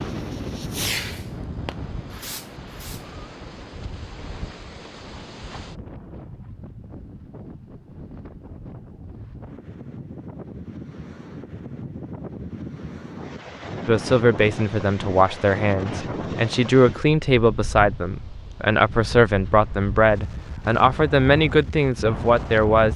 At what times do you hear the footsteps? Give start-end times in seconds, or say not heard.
not heard.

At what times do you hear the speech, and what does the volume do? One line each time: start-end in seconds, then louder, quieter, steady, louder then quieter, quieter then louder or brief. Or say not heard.
13.8-22.9 steady.